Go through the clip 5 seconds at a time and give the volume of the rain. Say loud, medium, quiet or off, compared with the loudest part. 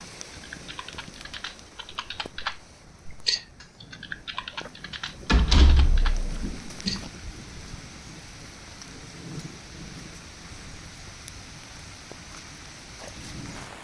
medium, loud, loud.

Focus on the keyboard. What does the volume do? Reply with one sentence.
The volume of the keyboard goes up, then down.